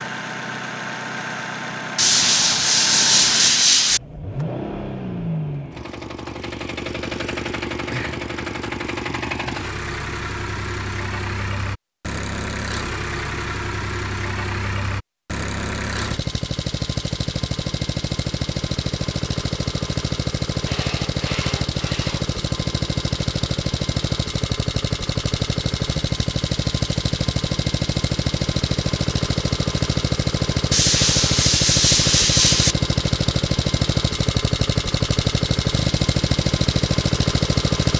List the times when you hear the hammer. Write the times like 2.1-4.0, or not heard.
not heard.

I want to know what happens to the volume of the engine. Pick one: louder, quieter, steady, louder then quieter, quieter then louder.
louder.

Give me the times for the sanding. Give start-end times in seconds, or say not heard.
1.9-4.0, 20.6-22.2, 30.7-32.8.